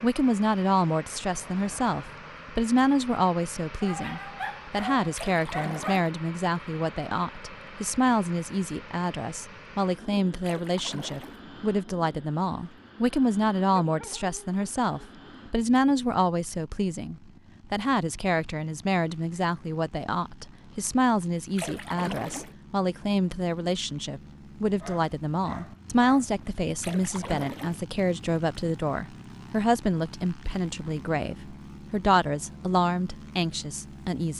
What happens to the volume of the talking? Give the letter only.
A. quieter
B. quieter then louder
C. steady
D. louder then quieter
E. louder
C.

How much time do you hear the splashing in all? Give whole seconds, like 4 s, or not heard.
4 s.